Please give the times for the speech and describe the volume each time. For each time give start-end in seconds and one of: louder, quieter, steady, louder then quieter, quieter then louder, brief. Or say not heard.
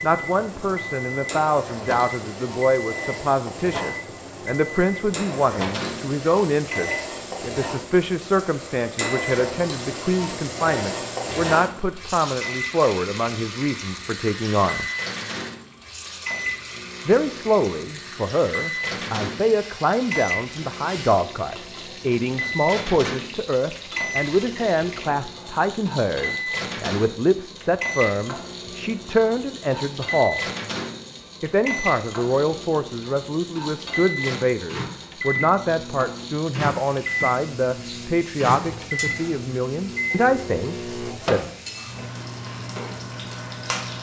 0.0-14.8 steady
17.1-30.4 steady
31.4-41.5 steady.